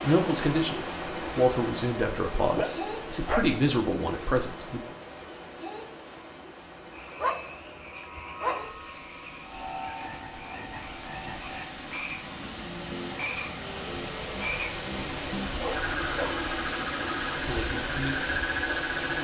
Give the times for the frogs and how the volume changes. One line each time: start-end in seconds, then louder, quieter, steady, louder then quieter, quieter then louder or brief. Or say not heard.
6.9-19.1 louder.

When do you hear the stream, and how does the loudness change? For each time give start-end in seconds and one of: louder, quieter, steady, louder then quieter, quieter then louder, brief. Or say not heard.
0.0-19.1 quieter then louder.